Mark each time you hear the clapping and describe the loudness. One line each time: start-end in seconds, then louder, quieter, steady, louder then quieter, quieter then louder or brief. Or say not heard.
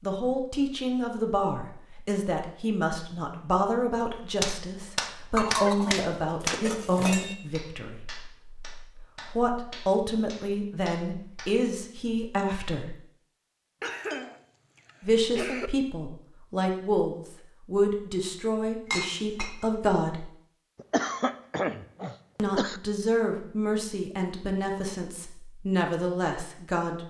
4.4-11.6 quieter.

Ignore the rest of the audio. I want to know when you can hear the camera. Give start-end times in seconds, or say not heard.
not heard.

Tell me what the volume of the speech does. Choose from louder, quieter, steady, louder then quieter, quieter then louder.
steady.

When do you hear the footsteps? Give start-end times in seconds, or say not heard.
not heard.